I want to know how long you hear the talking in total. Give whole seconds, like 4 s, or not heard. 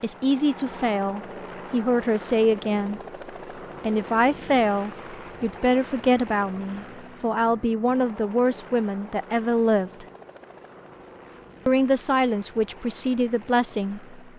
12 s.